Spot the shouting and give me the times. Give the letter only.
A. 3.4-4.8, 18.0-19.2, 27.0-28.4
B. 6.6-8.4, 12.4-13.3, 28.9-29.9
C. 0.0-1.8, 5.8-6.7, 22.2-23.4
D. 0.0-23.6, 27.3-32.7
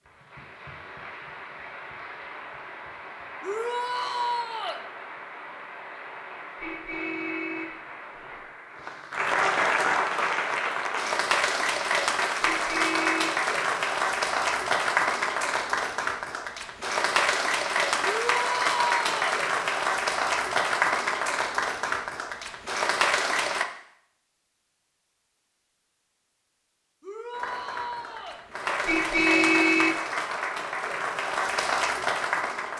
A.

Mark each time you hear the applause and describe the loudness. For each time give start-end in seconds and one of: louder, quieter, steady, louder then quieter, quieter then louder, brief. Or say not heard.
0.0-23.6 louder
27.3-32.7 louder.